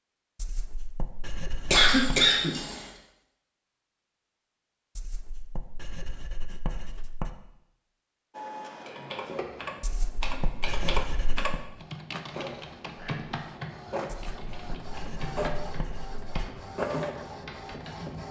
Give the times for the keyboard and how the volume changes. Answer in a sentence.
The keyboard can be heard from 8.8 to 18.2 s, getting quieter.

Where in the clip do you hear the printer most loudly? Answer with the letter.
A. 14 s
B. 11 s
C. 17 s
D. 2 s
C.